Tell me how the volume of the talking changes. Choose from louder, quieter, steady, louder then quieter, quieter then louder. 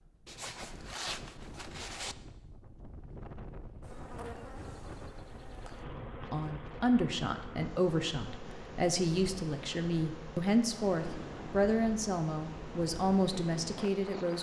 steady.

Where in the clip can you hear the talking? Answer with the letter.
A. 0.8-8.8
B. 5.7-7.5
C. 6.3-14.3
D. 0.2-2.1
C.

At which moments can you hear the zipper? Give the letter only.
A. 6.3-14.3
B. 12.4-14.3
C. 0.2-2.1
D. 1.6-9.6
C.